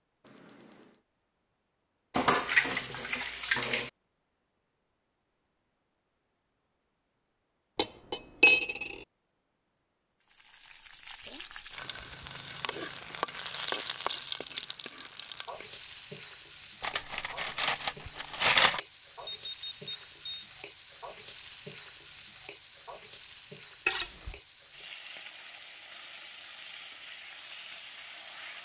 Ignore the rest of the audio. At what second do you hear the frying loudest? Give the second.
14 s.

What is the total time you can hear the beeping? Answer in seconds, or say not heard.
2 s.